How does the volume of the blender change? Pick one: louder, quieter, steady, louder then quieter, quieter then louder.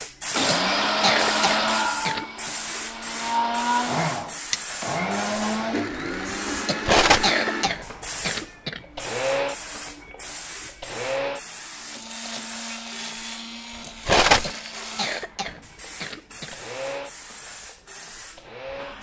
quieter.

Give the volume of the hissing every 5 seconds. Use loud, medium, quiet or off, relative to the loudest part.
loud, loud, medium, medium.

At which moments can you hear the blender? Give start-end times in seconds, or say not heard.
0.0-18.9.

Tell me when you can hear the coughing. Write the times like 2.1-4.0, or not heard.
0.5-2.5, 6.7-8.8, 14.4-16.6.